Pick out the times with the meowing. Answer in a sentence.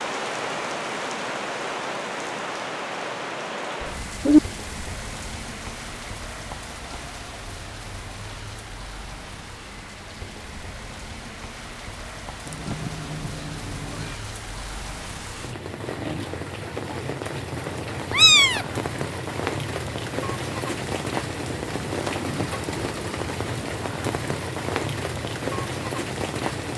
The meowing can be heard from 3.8 to 4.4 s, from 12.4 to 14.2 s and from 18.1 to 18.6 s.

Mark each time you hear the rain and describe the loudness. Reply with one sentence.
The rain can be heard from 0.0 to 26.7 s, getting quieter then louder.